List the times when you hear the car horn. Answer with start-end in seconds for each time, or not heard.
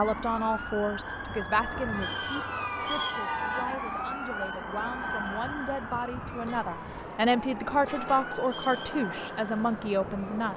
1.9-3.8, 6.4-8.3.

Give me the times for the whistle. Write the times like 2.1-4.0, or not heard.
1.9-3.2, 8.4-8.9.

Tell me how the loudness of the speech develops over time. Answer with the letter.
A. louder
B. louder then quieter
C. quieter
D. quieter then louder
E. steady
D.